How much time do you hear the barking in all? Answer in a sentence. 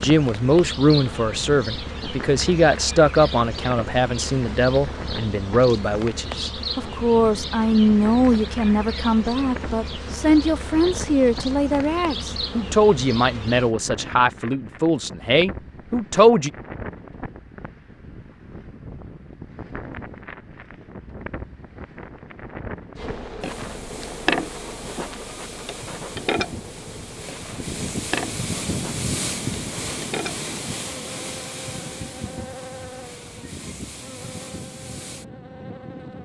You can't hear the barking here.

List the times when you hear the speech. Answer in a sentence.
The speech can be heard from 0.0 to 16.5 s.